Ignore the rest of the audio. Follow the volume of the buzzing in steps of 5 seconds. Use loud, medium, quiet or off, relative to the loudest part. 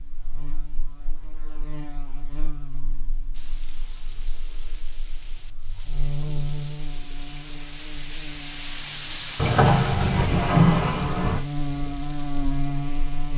quiet, medium, loud.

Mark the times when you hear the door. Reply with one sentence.
You can hear the door from 9.3 to 11.4 s.